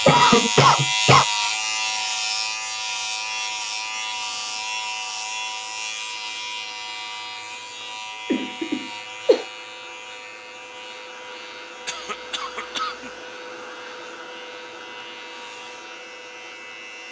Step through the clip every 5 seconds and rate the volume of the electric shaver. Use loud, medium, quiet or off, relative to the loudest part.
loud, medium, quiet, quiet.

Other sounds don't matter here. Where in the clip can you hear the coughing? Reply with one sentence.
You can hear the coughing from 0.1 to 1.2 s, from 8.3 to 9.4 s and from 11.8 to 13.1 s.